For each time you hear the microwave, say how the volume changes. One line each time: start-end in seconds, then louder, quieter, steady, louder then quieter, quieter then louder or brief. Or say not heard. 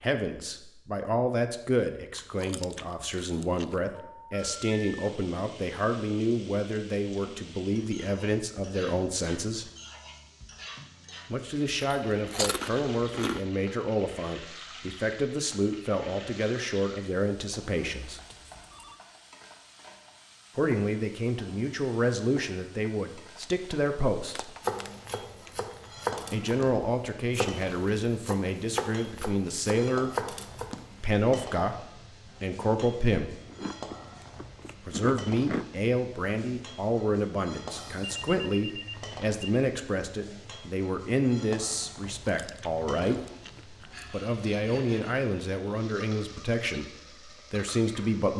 not heard.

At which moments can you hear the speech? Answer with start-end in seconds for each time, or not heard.
0.0-9.7, 11.3-18.2, 20.6-24.6, 26.3-30.1, 31.0-33.3, 34.9-48.3.